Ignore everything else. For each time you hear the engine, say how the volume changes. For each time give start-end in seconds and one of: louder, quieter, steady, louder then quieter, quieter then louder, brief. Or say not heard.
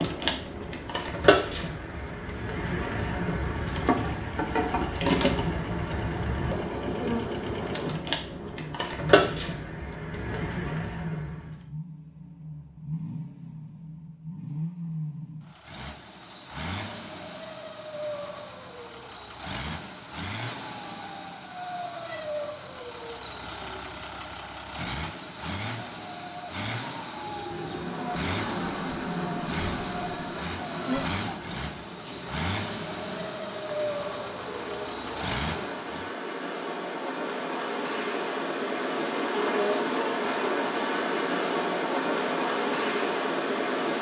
0.1-36.1 louder.